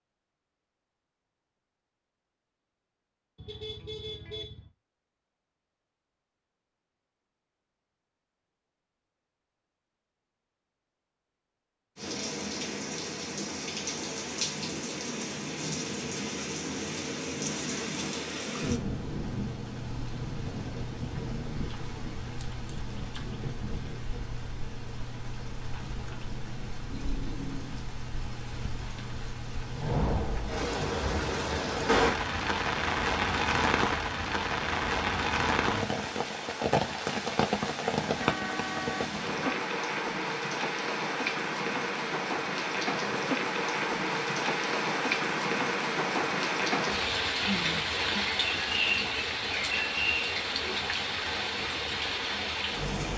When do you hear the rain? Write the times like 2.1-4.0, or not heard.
11.9-53.1.